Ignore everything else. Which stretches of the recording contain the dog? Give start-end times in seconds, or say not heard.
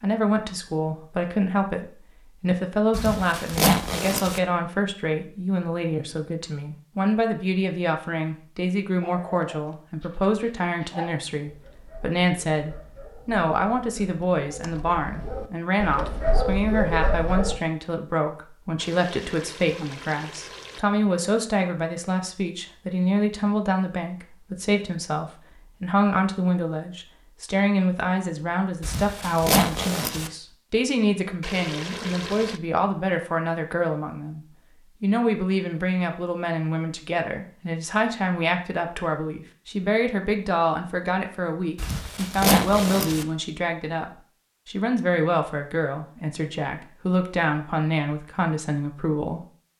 9.0-17.6.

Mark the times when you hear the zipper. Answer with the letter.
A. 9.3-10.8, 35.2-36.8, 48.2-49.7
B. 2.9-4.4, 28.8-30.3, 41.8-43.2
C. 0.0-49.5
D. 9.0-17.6
B.